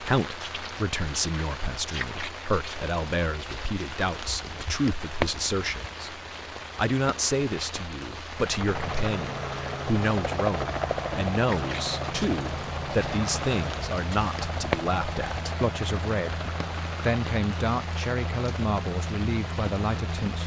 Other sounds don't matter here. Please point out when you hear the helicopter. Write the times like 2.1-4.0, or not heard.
8.3-20.4.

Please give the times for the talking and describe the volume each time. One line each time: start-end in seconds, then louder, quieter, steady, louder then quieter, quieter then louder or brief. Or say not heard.
0.0-20.4 steady.